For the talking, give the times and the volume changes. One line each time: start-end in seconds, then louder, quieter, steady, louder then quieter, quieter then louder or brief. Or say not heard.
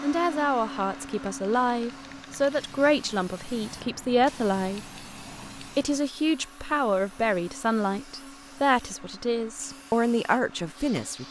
0.0-4.8 steady
5.6-11.2 quieter then louder.